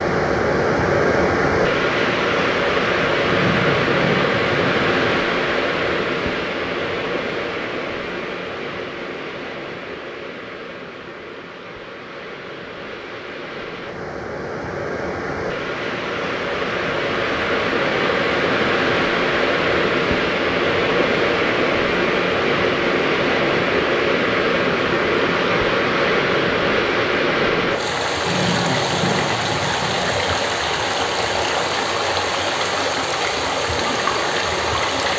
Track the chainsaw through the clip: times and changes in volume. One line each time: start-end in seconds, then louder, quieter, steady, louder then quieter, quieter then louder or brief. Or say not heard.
not heard.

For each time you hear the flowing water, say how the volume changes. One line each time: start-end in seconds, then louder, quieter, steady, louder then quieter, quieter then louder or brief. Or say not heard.
0.0-35.1 quieter then louder.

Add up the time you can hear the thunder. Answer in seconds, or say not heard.
4 s.